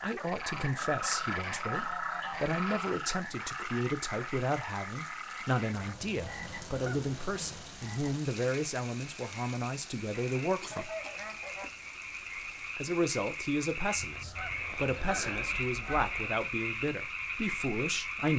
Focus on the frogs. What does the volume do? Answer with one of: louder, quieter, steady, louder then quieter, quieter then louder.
quieter then louder.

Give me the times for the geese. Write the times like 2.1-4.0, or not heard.
0.4-3.0, 5.8-7.7, 10.1-11.7, 14.0-16.4.